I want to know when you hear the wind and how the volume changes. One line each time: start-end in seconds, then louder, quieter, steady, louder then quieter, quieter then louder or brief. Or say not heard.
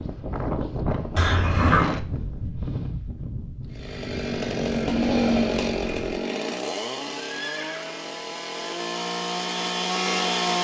0.0-6.2 quieter.